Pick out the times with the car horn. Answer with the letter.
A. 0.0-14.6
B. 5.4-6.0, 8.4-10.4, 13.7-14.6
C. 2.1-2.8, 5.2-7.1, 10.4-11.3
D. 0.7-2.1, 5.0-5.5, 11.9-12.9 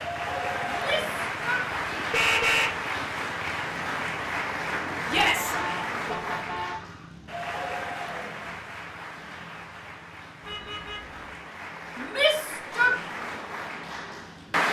C.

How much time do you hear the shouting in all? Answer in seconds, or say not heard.
3 s.